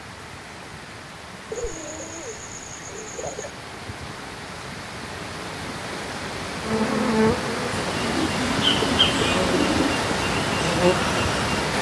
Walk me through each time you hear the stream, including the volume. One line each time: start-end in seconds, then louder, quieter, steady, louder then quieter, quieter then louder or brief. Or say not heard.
0.0-11.7 louder.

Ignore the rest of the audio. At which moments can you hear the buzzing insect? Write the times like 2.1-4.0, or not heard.
6.7-11.7.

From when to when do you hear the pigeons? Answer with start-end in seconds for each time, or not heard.
1.5-3.5, 8.0-10.1.